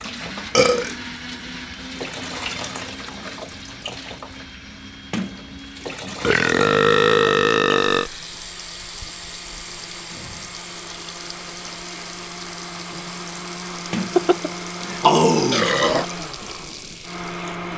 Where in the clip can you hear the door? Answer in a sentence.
The door can be heard from 5.1 to 6.3 s and from 13.9 to 15.1 s.